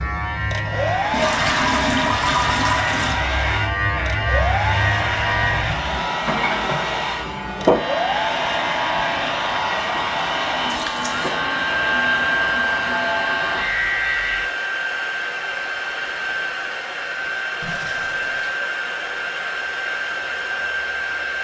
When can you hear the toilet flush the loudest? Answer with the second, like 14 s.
2 s.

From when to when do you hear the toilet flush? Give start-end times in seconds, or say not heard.
1.1-3.1, 10.7-11.4, 17.6-18.6.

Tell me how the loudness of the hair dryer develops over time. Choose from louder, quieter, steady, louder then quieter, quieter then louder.
steady.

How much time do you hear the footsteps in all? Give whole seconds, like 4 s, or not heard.
not heard.